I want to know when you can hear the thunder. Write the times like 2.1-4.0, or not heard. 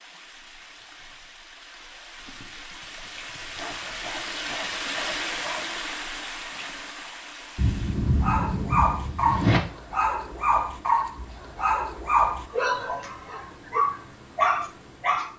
7.5-9.6.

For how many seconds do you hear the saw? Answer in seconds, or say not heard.
2 s.